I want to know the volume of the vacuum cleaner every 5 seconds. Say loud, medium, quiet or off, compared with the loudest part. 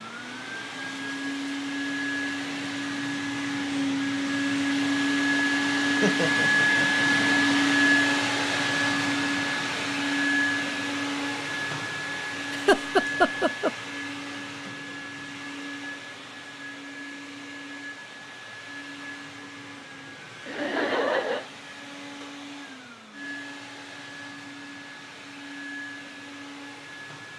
medium, loud, medium, quiet, quiet, quiet.